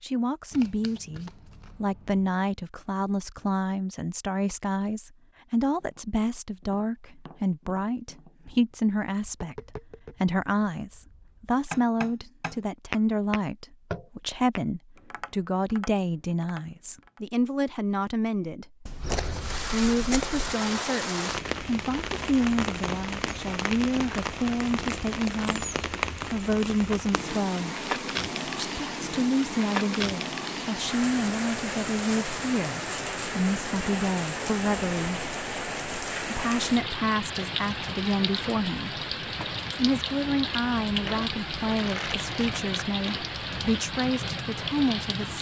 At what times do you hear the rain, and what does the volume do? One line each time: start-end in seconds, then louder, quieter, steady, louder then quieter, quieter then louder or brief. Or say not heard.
19.0-45.3 steady.